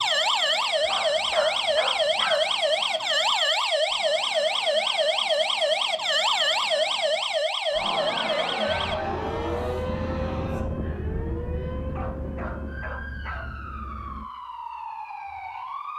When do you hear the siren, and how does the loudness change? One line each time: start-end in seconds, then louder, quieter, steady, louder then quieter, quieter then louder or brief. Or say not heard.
0.0-15.9 quieter.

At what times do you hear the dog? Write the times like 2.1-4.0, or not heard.
0.8-2.5, 11.9-13.7.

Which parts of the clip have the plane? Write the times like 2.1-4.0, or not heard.
8.7-14.2.